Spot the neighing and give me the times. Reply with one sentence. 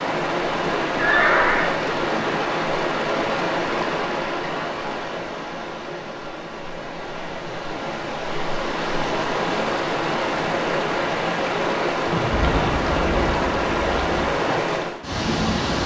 The neighing can be heard from 0.9 to 1.8 s and from 12.1 to 12.9 s.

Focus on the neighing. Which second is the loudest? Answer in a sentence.
The volume of the neighing peaks at 1 second.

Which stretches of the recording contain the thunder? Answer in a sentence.
You can hear the thunder from 12.3 to 14.3 s.